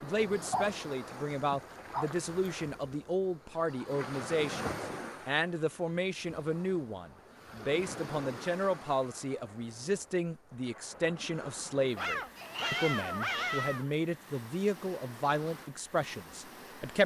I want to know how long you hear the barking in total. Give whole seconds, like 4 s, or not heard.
4 s.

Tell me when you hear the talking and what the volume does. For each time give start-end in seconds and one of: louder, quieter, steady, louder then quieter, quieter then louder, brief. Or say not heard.
0.0-17.0 steady.